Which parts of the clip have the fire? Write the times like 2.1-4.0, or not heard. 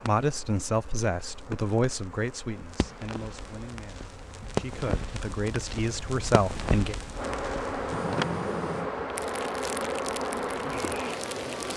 0.0-11.7.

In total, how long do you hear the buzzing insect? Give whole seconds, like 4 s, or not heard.
12 s.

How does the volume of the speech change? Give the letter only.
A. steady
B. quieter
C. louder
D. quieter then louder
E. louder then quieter
D.